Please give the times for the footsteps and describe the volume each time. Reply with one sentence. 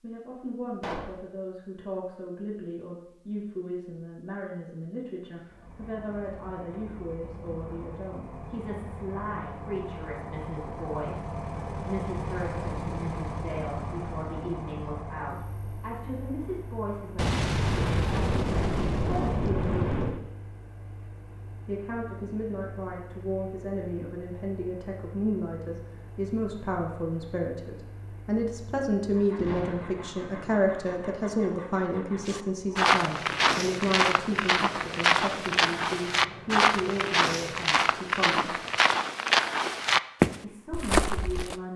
The footsteps can be heard from 32.2 to 41.5 s, at a steady volume.